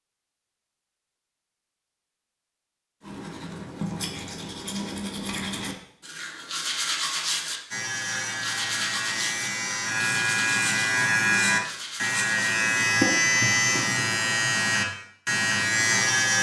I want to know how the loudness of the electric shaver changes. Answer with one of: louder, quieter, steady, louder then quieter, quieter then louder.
louder.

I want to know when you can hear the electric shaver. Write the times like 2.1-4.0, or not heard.
7.7-16.3.